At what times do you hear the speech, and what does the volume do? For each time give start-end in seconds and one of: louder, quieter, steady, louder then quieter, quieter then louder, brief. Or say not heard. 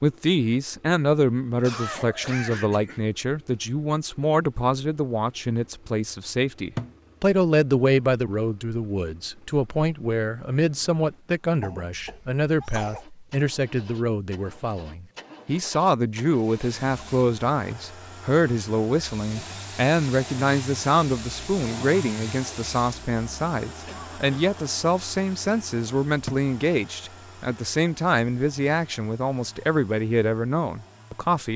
0.0-31.5 steady.